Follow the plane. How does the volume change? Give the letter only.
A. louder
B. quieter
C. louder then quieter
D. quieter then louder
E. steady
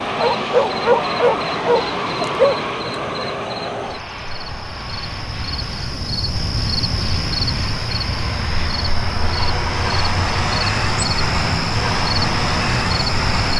D.